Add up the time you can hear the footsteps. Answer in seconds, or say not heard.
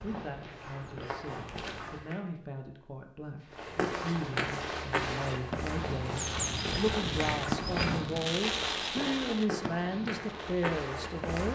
10 s.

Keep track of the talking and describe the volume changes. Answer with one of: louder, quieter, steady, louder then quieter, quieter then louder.
louder.